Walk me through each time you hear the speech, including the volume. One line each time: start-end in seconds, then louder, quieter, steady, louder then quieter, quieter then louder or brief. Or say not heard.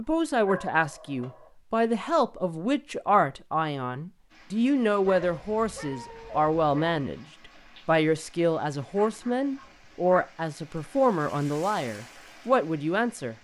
0.0-7.2 steady
7.8-13.3 steady.